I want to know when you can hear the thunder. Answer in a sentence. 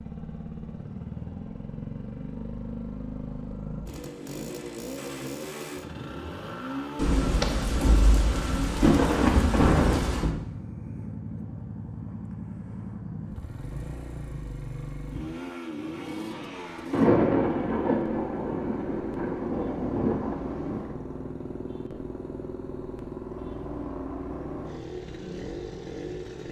You can hear the thunder from 7.0 to 10.3 s and from 16.9 to 20.9 s.